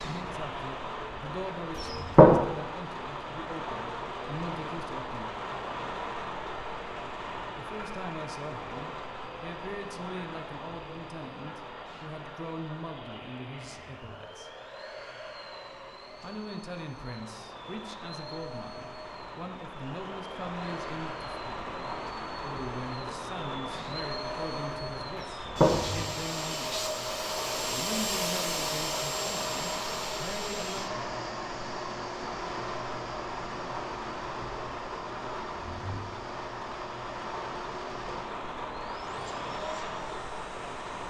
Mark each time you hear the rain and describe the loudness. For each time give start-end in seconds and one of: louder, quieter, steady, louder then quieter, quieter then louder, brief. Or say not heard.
0.0-41.0 quieter then louder.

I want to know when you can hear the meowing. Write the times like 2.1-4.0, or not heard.
not heard.